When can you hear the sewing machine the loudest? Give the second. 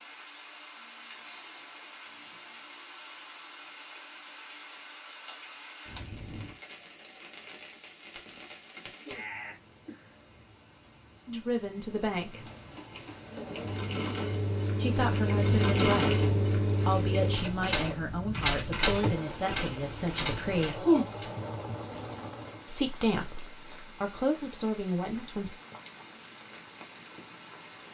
16 s.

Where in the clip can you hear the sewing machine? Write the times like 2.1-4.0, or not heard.
13.2-22.8.